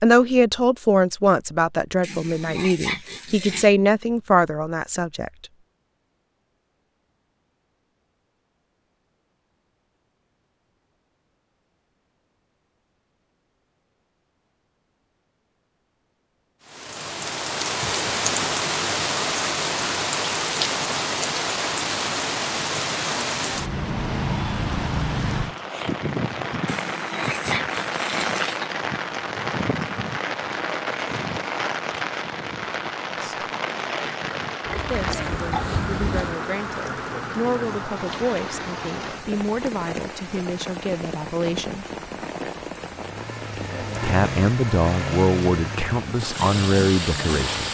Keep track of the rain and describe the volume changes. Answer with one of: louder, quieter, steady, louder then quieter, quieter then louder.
quieter.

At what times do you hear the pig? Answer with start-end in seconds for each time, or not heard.
2.0-3.7, 26.6-28.7, 34.6-36.4.